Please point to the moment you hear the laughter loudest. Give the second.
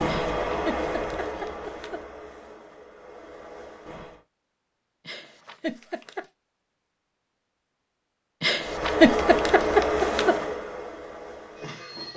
9 s.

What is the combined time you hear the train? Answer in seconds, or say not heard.
8 s.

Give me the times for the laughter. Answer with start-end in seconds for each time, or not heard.
0.1-2.0, 5.0-6.2, 8.4-10.3.